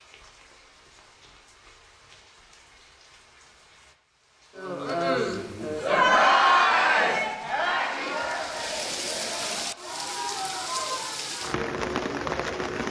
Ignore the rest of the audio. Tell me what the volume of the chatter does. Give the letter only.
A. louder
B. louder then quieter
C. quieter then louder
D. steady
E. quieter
E.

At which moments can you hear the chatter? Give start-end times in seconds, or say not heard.
4.5-12.8.